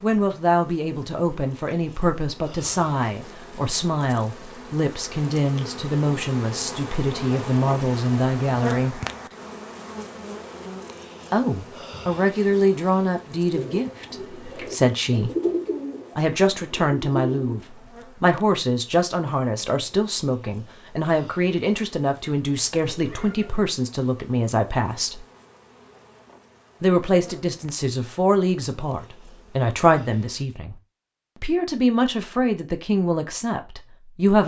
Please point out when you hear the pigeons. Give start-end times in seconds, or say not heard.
13.5-17.8.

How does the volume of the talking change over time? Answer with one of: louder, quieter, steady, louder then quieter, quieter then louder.
steady.